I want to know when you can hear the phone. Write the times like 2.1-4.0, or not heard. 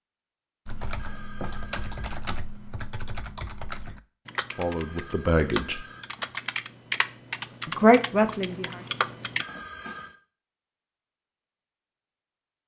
0.9-2.2, 4.5-6.5, 9.4-10.2.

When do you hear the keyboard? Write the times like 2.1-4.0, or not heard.
0.7-9.4.